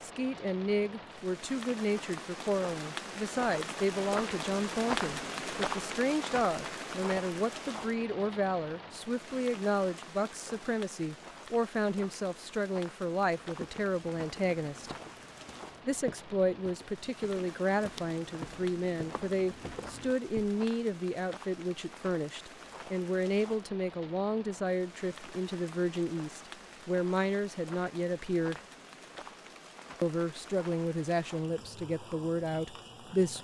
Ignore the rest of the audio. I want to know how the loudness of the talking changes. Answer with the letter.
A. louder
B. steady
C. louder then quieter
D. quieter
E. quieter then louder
B.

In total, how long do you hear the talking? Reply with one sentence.
You can hear the talking for 31 seconds altogether.